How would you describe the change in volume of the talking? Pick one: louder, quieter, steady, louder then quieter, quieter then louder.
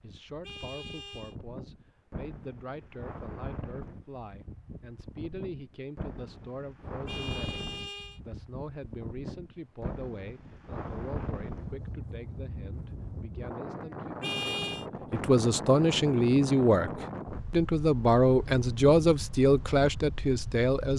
louder.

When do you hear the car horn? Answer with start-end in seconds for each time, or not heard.
0.4-1.4, 7.0-8.2, 14.2-14.8.